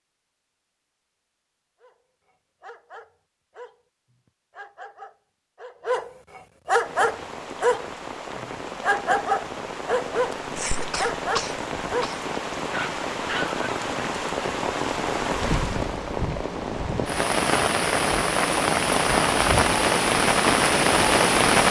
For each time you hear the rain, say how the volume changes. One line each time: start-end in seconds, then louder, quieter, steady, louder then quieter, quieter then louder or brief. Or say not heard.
6.7-21.6 louder.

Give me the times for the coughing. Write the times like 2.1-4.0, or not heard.
10.6-12.2.